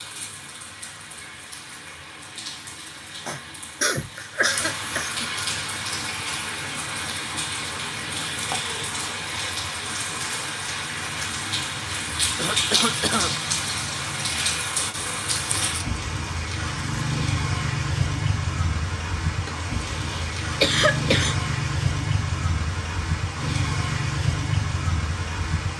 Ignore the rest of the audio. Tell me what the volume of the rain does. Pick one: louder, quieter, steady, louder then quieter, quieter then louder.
louder.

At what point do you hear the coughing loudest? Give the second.
21 s.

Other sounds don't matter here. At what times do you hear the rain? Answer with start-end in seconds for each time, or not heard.
0.0-25.7.